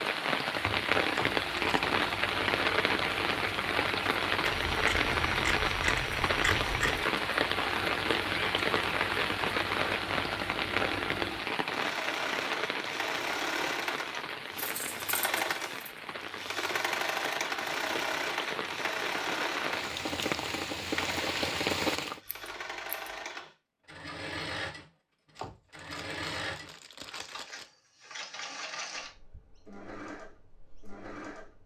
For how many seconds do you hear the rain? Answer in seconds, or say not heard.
22 s.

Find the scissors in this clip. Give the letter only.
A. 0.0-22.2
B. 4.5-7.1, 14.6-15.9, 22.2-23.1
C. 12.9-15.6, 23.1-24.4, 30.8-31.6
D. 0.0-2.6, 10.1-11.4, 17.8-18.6
B.